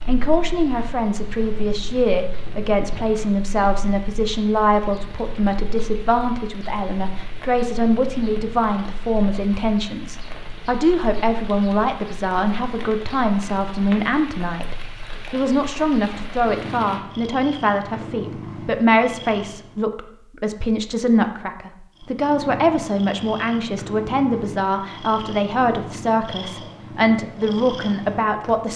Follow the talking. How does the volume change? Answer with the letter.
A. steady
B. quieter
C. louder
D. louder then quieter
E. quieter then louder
A.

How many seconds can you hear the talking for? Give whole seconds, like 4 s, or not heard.
29 s.